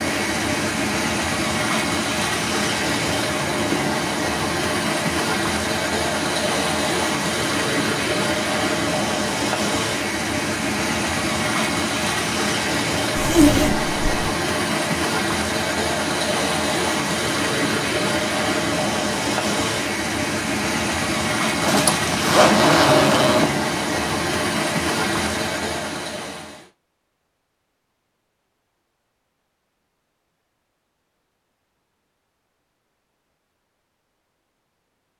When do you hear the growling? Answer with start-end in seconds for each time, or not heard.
not heard.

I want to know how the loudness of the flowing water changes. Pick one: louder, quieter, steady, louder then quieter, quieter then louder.
steady.